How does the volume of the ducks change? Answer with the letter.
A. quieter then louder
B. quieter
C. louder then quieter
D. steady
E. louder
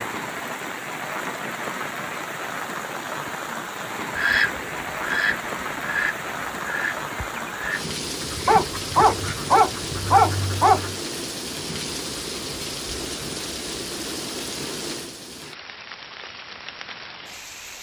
B.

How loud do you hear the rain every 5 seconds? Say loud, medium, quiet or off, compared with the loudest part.
loud, loud, loud, medium.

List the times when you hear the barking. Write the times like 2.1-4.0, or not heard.
8.4-10.9.